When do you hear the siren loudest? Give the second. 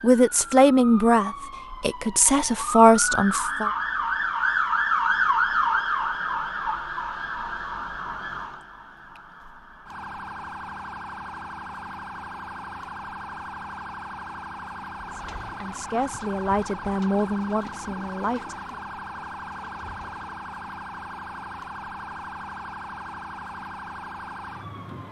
5 s.